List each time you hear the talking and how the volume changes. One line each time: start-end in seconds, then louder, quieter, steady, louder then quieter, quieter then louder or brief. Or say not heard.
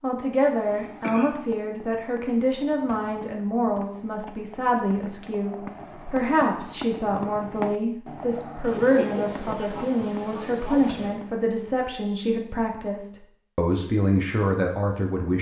0.0-15.3 steady.